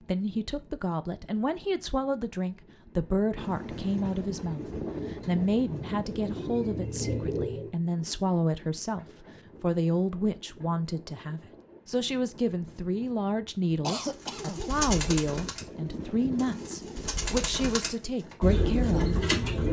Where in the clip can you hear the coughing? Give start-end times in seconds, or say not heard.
13.8-14.7.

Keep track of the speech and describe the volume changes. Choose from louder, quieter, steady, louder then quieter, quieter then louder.
steady.